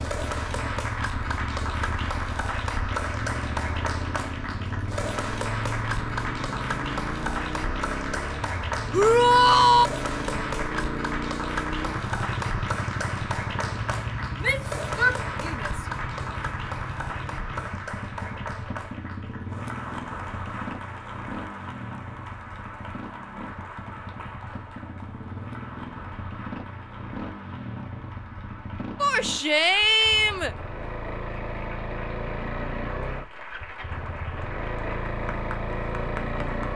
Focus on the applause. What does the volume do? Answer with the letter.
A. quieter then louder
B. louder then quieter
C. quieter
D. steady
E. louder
C.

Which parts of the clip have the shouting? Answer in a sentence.
You can hear the shouting from 8.9 to 9.9 s, from 14.4 to 15.8 s and from 29.0 to 30.6 s.